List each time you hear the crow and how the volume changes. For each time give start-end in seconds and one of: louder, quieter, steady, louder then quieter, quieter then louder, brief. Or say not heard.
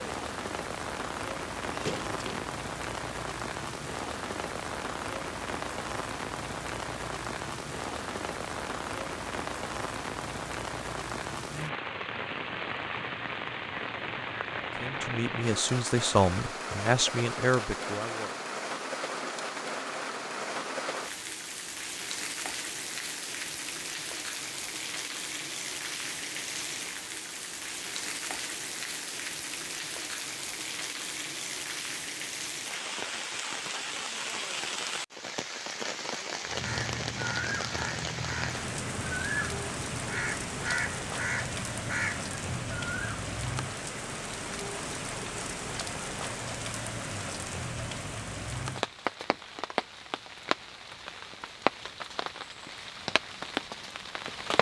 36.5-43.2 steady.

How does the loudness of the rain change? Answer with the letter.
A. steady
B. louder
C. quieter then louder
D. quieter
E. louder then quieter
A.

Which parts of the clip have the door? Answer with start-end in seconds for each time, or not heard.
1.7-2.5.